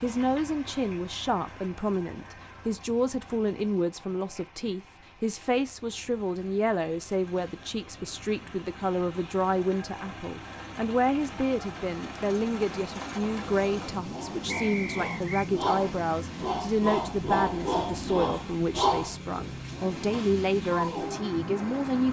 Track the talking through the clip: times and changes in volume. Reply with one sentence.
You can hear the talking from 0.0 to 22.0 s, at a steady volume.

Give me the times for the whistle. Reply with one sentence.
The whistle can be heard from 14.4 to 15.5 s.